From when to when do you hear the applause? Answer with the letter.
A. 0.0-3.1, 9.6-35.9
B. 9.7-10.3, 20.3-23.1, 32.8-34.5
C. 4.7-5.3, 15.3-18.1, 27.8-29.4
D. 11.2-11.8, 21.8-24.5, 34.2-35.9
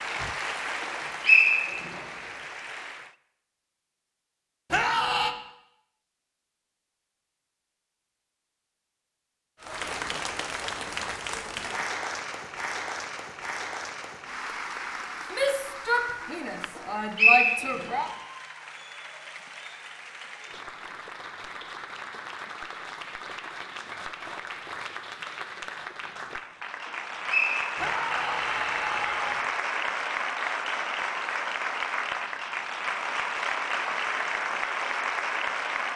A.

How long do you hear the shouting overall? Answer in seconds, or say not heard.
5 s.